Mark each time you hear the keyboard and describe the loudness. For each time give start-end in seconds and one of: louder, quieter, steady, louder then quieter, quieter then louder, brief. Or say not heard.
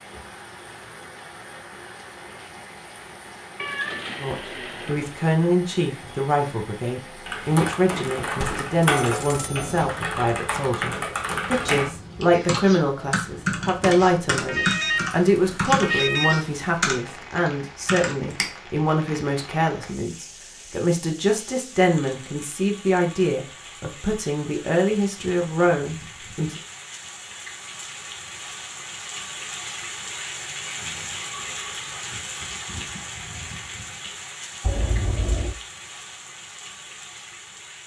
7.2-18.5 steady.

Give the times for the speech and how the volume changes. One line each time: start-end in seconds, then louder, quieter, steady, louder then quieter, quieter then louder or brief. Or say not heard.
4.2-26.6 steady.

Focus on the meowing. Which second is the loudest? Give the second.
4 s.